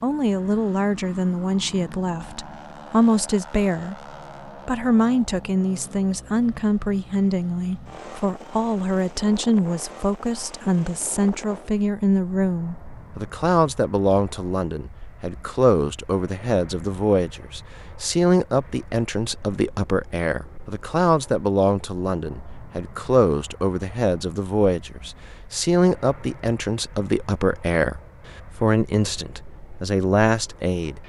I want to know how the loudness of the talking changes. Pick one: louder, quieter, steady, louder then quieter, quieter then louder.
steady.